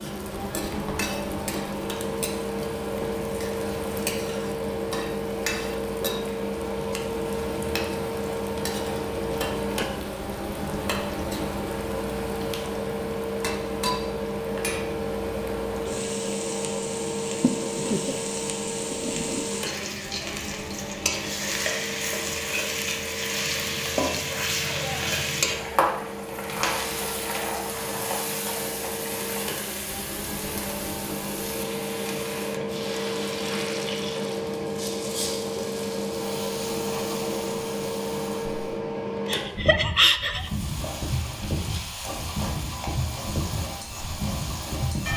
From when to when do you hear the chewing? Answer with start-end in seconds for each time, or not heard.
not heard.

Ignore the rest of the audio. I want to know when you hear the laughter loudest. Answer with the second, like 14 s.
40 s.